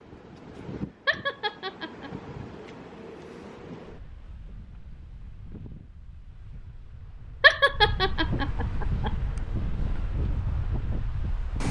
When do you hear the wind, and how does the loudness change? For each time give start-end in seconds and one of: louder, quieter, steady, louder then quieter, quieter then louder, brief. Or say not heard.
0.0-11.6 quieter then louder.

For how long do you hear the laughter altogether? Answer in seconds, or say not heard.
3 s.